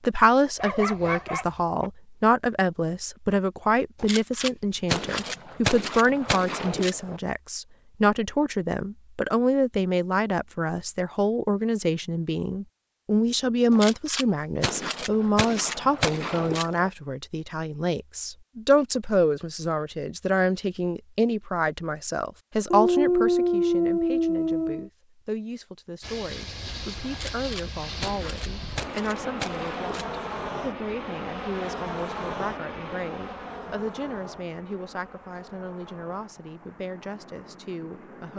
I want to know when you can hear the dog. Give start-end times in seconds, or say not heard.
0.6-1.9, 22.7-24.9.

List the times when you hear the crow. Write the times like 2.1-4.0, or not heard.
not heard.